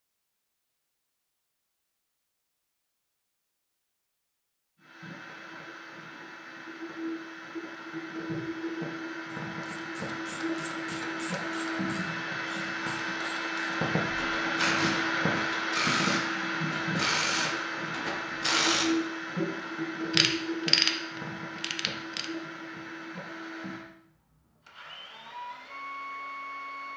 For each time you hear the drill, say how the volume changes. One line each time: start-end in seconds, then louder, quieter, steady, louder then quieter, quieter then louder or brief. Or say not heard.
4.8-26.9 louder then quieter.